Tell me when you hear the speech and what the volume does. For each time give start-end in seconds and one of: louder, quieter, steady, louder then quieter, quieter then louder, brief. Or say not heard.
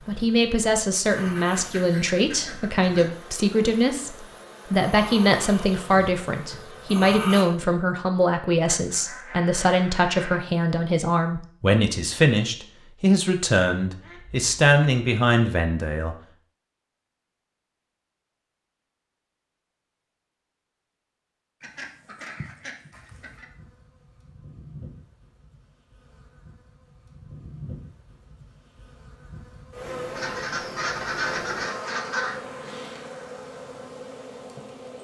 0.1-16.1 steady.